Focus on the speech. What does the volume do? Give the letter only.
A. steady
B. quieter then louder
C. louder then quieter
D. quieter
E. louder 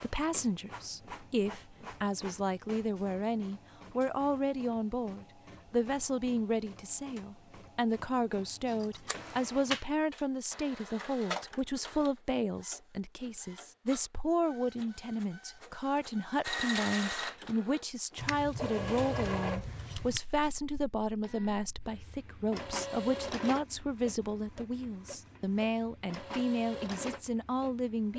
A.